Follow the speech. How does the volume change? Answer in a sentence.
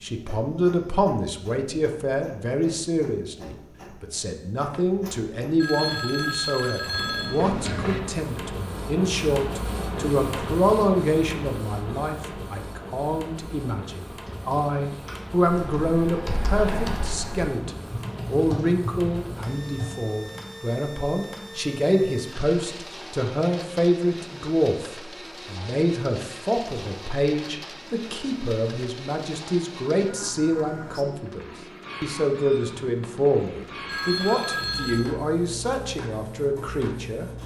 The volume of the speech stays about the same.